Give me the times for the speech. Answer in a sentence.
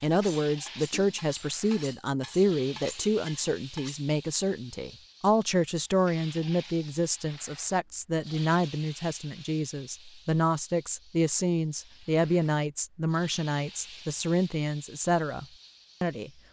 You can hear the speech from 0.0 to 16.3 s.